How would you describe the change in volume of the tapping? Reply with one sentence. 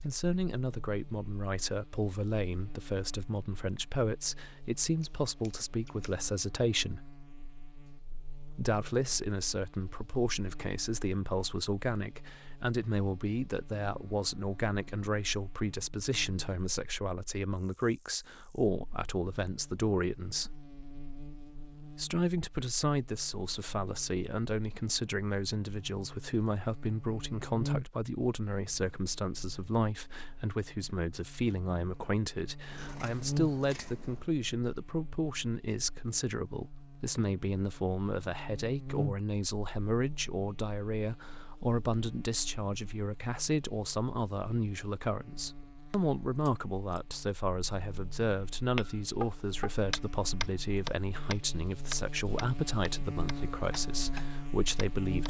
The volume of the tapping goes down.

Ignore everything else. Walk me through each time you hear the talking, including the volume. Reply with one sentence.
The talking can be heard from 0.0 to 7.1 s, at a steady volume; from 8.5 to 20.6 s, at a steady volume; and from 21.9 to 55.2 s, at a steady volume.